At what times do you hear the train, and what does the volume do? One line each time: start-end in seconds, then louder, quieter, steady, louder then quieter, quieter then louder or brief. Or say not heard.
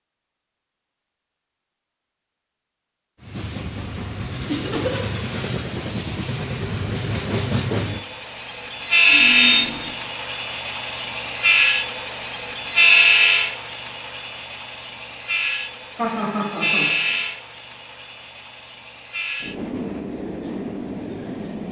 3.2-21.6 louder then quieter.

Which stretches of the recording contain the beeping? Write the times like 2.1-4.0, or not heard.
9.1-9.9.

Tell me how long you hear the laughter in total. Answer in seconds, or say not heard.
2 s.